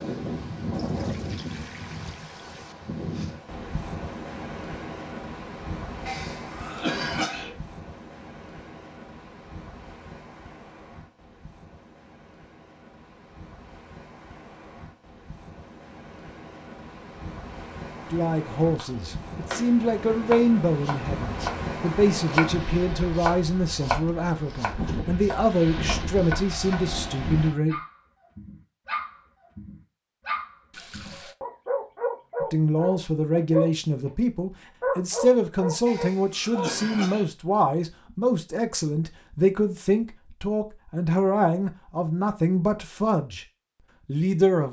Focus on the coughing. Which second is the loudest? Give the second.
7 s.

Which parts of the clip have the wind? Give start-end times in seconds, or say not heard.
0.0-27.6.